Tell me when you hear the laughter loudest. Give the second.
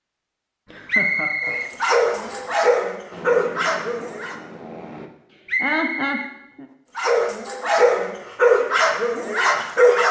6 s.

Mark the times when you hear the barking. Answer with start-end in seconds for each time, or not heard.
1.4-4.3, 7.0-10.0.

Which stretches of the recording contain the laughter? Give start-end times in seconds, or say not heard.
0.7-1.6, 5.3-6.7.